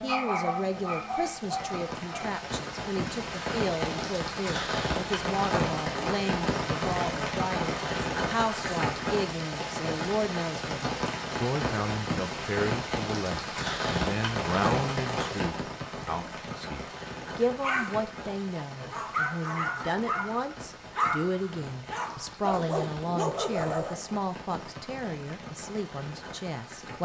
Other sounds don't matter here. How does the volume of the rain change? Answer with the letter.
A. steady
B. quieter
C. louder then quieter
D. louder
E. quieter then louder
B.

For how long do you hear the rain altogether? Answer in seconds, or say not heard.
27 s.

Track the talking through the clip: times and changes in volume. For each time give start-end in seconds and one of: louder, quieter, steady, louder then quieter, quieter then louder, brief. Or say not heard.
0.0-27.0 steady.